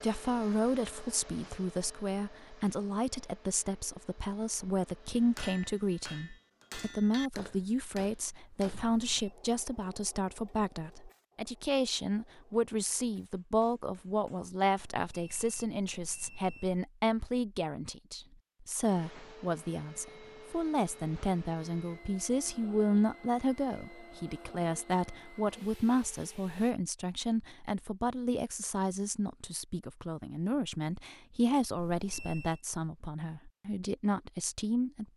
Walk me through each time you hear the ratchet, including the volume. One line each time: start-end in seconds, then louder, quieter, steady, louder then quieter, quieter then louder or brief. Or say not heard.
not heard.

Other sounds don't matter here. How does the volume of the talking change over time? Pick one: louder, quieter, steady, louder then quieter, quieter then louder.
steady.